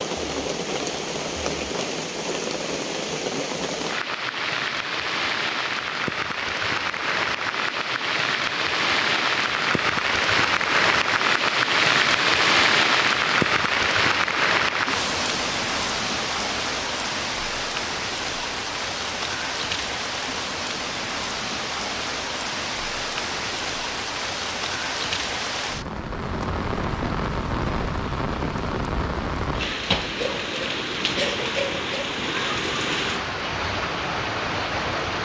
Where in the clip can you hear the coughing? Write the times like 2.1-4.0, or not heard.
30.1-31.9.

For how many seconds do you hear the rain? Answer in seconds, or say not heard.
35 s.